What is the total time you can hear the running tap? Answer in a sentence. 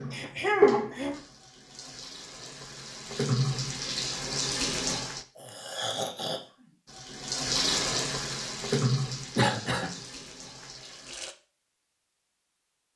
You can hear the running tap for 10 seconds altogether.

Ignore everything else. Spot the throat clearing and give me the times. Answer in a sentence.
You can hear the throat clearing from 0.1 to 1.2 s, from 5.3 to 6.4 s and from 9.3 to 10.0 s.